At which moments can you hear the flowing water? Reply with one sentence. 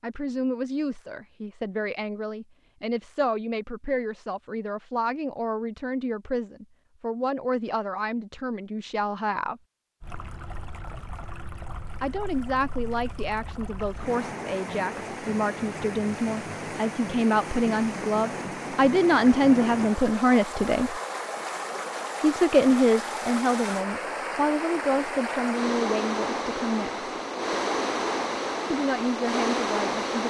You can hear the flowing water from 10.0 to 30.2 s.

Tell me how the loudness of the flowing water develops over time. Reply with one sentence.
The volume of the flowing water goes up.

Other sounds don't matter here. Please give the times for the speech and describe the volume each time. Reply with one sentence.
The speech can be heard from 0.0 to 9.6 s, at a steady volume; from 12.0 to 20.9 s, getting louder; from 22.2 to 27.1 s, getting quieter; and briefly from 28.7 to 30.2 s.